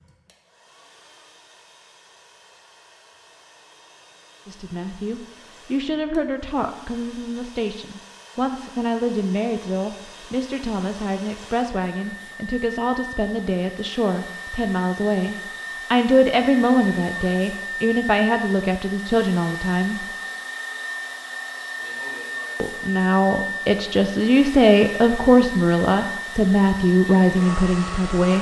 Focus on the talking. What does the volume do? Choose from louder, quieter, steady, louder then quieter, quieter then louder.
louder.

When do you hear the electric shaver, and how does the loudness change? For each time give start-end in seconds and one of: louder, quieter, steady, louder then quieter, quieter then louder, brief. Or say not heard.
not heard.